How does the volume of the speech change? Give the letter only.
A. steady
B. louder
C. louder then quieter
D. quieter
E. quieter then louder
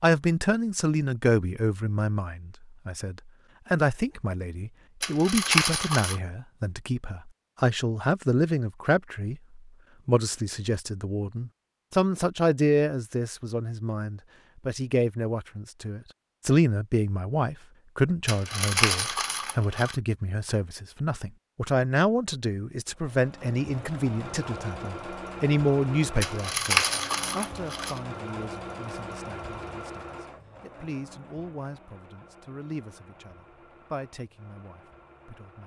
D.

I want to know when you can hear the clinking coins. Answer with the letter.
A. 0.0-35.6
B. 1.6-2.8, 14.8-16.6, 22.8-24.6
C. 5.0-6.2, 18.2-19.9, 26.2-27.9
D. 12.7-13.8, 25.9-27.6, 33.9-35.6
C.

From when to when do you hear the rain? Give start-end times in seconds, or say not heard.
not heard.